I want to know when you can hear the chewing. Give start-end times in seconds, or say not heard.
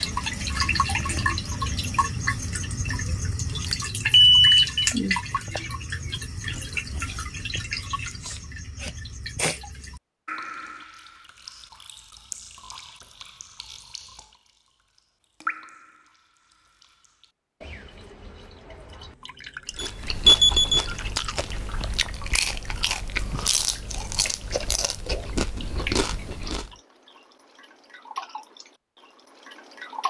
19.7-26.7.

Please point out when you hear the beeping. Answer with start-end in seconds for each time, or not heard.
3.6-4.7, 19.8-20.9.